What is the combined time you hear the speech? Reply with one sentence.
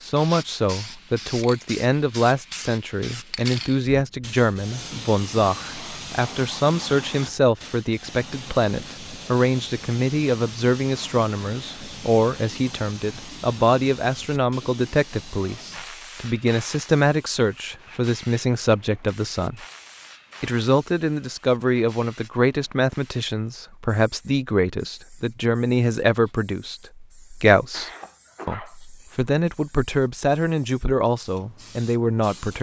The speech can be heard for 32 seconds in total.